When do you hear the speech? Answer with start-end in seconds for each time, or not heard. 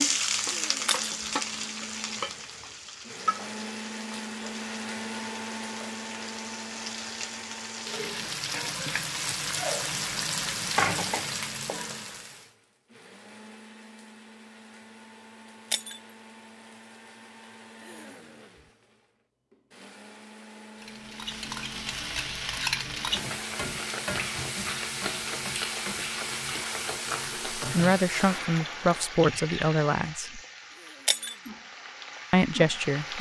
27.6-30.4, 32.3-33.1.